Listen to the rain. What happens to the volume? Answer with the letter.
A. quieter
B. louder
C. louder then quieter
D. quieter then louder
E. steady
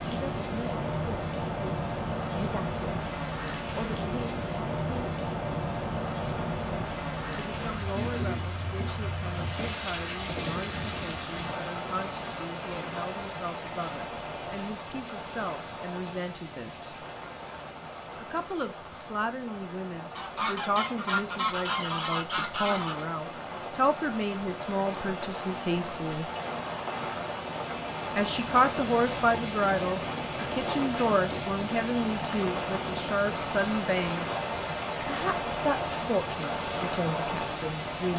D.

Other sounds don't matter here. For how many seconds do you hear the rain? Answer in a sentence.
You can hear the rain for 38 seconds altogether.